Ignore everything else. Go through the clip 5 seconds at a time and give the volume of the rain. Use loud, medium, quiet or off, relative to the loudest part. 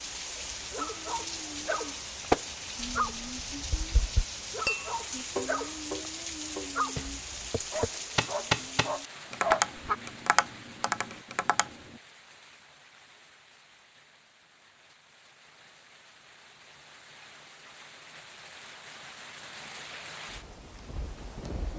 loud, loud, quiet, medium, medium.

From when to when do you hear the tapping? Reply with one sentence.
You can hear the tapping from 2.3 to 11.8 s.